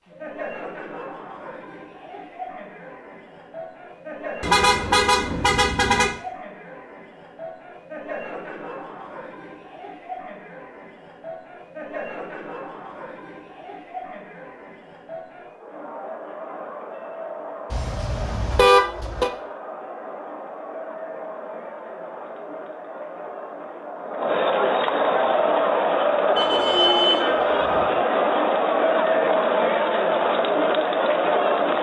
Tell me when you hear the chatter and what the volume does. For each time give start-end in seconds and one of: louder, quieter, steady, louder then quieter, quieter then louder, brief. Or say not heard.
0.0-31.7 louder.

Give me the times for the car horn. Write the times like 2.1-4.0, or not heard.
4.4-6.2, 17.7-19.3, 26.4-28.0.